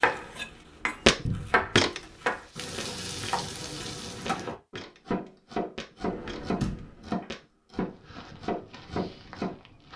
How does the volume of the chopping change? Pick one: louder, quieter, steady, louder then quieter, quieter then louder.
steady.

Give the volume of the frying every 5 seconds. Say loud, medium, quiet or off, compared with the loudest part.
loud, off.